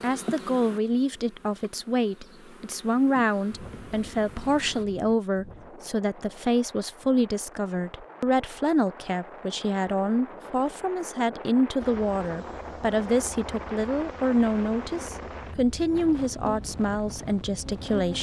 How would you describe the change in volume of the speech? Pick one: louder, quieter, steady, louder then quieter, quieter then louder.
steady.